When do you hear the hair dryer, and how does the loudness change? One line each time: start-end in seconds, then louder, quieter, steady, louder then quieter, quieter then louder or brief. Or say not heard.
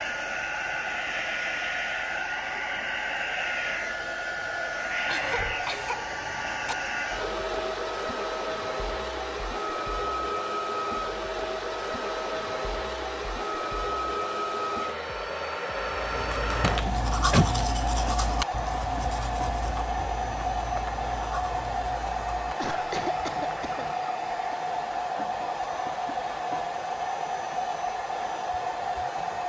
0.0-29.4 steady.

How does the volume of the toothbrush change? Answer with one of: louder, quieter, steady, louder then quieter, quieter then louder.
quieter.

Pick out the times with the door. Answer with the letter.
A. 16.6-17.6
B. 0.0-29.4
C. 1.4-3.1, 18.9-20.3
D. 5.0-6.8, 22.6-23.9
A.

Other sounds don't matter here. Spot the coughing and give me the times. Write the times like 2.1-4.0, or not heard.
5.0-6.8, 22.6-23.9.